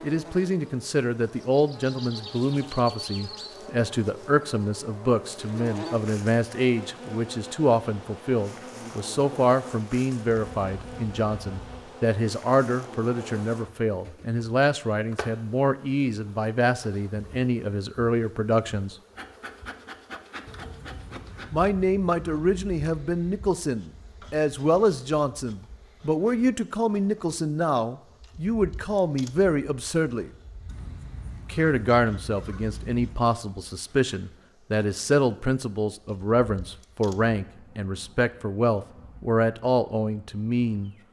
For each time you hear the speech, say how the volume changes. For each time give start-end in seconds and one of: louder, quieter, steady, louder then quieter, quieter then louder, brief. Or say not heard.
0.0-18.9 steady
21.5-30.3 steady
31.5-41.0 steady.